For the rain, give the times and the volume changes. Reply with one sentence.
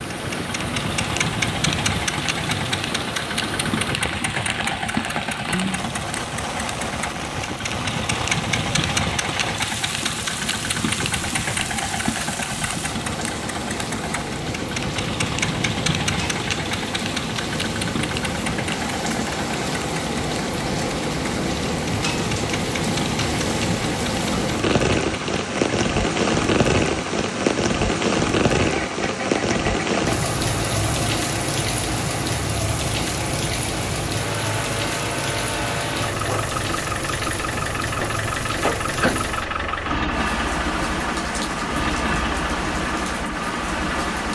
You can hear the rain from 0.0 to 44.3 s, getting louder then quieter.